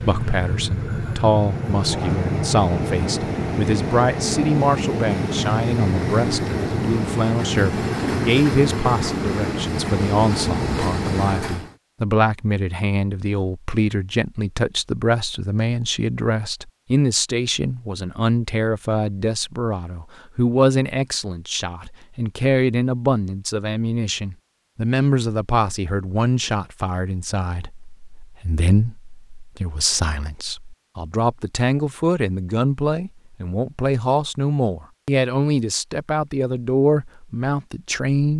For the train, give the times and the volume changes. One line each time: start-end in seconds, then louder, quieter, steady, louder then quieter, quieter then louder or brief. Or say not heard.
0.0-11.8 steady.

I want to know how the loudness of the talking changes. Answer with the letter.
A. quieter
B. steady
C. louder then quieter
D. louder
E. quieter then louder
B.